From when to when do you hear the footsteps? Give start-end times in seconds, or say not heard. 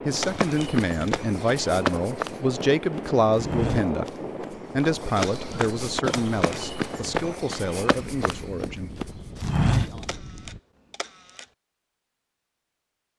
0.1-10.2.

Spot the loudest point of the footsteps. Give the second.
10 s.